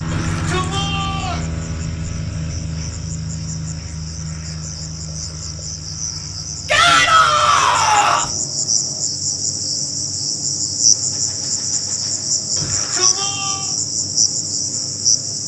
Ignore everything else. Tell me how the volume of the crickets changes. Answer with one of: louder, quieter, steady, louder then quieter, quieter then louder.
louder.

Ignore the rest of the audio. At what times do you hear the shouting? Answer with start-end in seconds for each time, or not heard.
0.1-1.4, 6.7-8.3, 12.6-13.7.